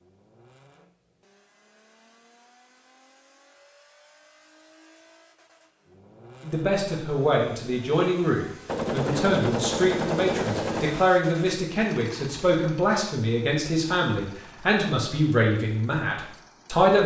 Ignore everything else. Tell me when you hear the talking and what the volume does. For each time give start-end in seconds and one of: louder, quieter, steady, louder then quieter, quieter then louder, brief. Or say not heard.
6.4-17.0 steady.